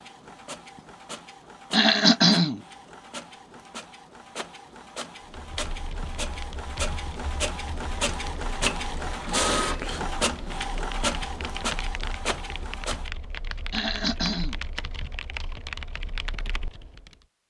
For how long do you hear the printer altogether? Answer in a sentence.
The printer can be heard for 13 seconds in total.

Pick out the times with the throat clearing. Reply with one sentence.
The throat clearing can be heard from 1.7 to 2.6 s and from 13.7 to 14.6 s.